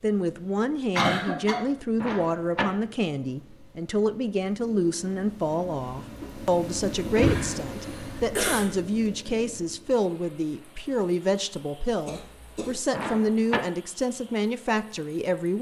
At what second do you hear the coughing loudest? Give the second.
1 s.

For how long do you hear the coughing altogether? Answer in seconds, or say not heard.
3 s.